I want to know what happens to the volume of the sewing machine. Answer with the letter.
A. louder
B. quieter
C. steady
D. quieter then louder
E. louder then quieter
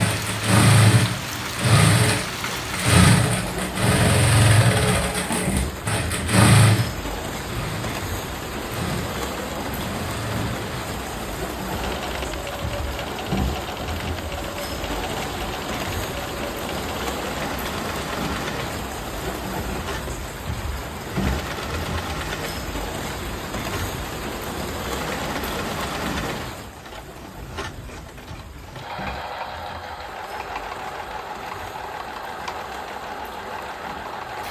B.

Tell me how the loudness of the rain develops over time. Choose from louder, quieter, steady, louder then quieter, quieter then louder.
quieter.